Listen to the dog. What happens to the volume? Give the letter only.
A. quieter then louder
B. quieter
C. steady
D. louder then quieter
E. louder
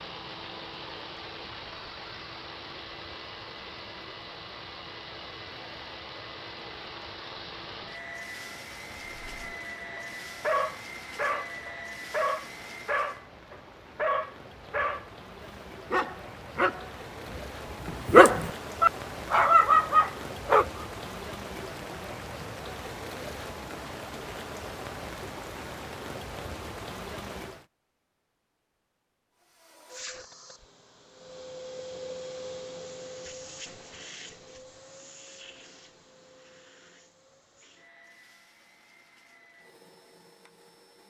E.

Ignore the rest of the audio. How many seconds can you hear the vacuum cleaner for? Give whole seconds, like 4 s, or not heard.
25 s.